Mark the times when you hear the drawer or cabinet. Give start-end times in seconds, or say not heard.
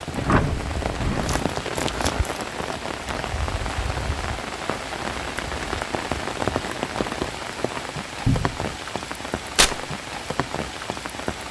0.1-1.5, 8.2-8.7.